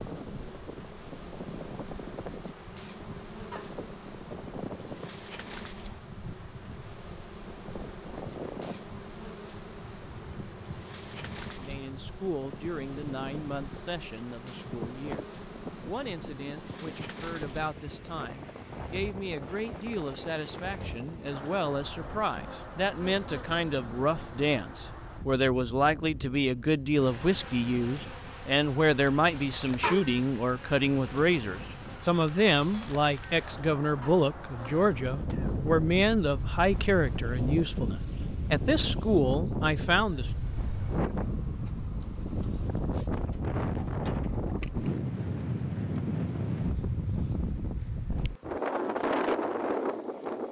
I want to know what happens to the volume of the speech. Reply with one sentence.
The volume of the speech goes up.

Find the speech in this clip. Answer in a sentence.
You can hear the speech from 11.6 to 40.3 s.